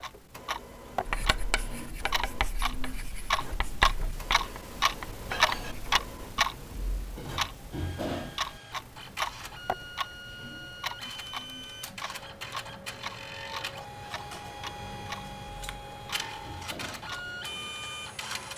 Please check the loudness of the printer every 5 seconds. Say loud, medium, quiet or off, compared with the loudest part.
medium, medium, loud, loud.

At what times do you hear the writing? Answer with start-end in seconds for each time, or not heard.
1.1-6.4.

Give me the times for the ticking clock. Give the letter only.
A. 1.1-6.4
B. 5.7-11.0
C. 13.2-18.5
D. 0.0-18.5
D.